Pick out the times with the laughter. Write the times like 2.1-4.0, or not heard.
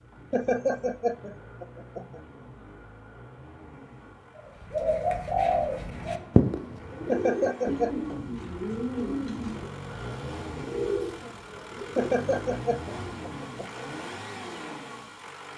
0.3-2.2, 7.0-8.0, 11.9-13.8.